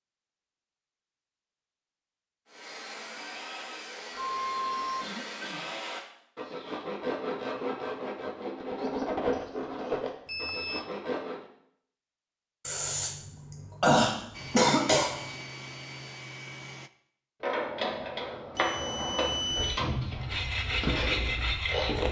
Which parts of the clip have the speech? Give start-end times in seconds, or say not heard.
not heard.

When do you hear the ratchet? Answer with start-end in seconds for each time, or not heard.
17.4-22.0.